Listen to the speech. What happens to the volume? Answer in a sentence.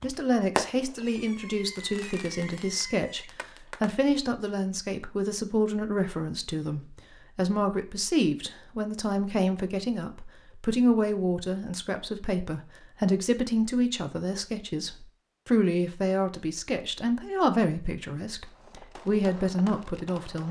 The loudness of the speech stays about the same.